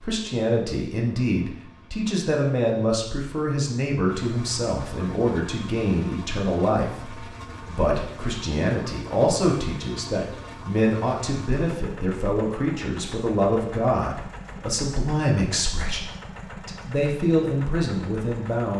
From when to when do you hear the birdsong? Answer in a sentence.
The birdsong can't be heard in this clip.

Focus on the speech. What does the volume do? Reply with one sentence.
The volume of the speech stays about the same.